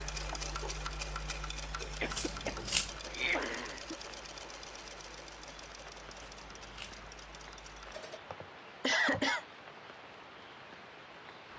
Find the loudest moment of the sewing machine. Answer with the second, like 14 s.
1 s.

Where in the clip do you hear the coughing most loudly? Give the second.
9 s.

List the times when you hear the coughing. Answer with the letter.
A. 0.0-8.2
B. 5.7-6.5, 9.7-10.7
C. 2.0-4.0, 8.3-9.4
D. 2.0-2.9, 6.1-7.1
C.